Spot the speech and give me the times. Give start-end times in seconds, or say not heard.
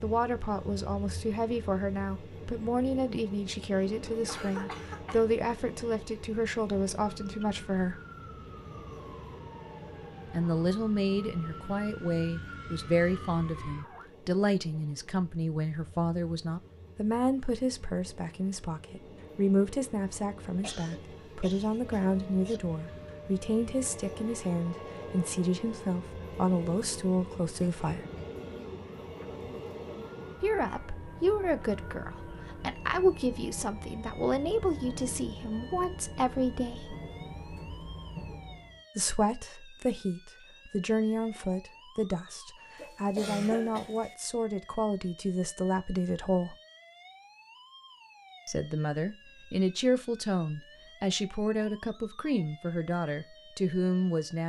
0.0-8.0, 10.3-28.1, 30.4-37.0, 39.0-46.5, 48.5-54.4.